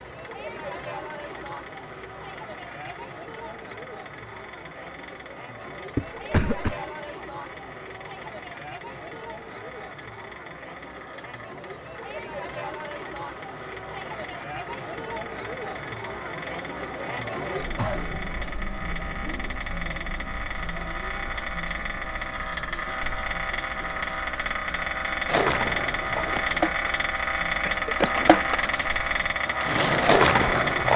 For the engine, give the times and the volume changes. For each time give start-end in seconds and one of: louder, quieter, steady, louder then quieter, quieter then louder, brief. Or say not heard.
0.0-30.9 louder.